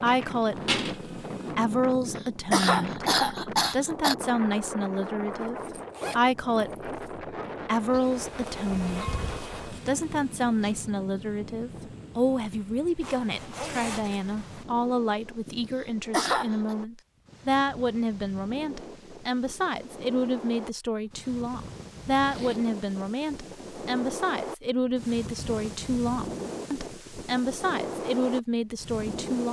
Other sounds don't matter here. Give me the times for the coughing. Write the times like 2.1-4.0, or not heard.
1.9-4.2, 15.4-16.8.